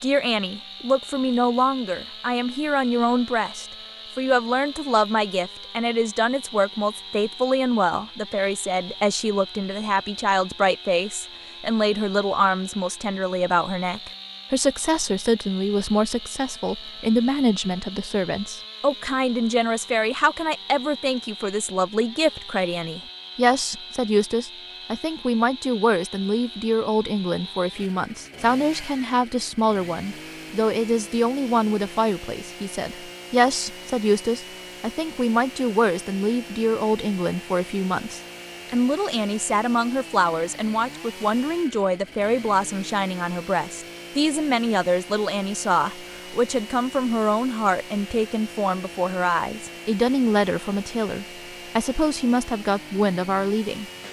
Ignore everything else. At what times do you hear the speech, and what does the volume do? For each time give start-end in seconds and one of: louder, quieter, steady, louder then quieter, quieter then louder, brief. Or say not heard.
0.0-53.9 steady.